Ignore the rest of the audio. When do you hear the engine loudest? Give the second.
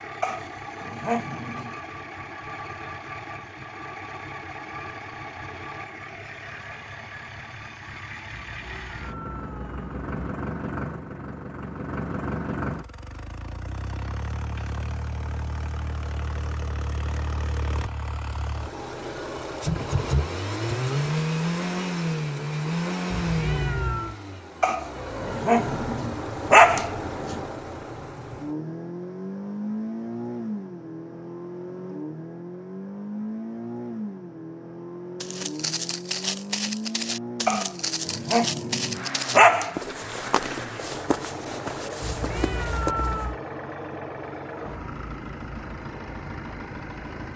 21 s.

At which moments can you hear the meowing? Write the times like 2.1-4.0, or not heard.
8.3-10.2, 23.1-24.1, 42.0-43.4.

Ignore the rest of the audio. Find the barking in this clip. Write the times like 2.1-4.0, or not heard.
0.2-1.8, 24.6-27.4, 37.5-39.8.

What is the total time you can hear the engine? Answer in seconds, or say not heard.
47 s.